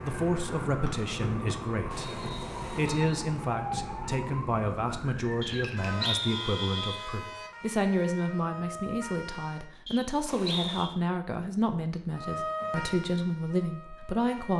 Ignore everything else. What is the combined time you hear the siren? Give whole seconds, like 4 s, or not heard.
12 s.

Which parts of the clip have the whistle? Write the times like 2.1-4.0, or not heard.
0.8-3.2, 5.4-7.0, 9.8-10.9.